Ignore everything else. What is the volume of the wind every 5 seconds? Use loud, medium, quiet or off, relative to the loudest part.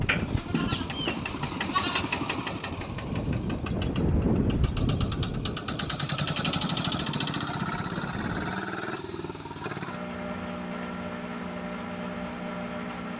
loud, medium, off.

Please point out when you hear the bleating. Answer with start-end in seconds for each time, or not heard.
0.1-2.1.